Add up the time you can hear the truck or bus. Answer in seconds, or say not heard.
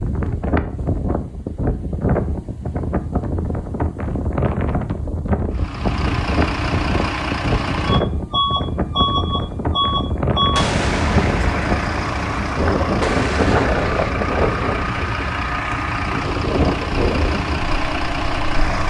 13 s.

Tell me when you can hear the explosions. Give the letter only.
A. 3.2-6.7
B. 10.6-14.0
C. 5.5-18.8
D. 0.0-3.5
B.